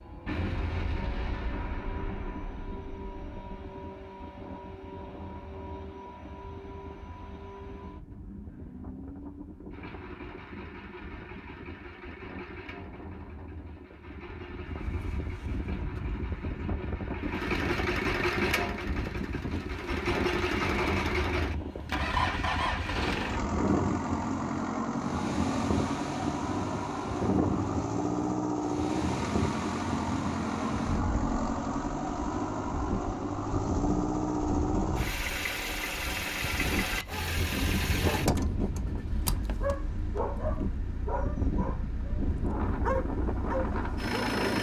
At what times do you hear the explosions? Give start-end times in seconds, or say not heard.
0.2-3.6.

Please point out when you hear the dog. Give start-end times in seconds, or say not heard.
36.4-44.4.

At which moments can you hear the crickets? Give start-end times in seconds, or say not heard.
not heard.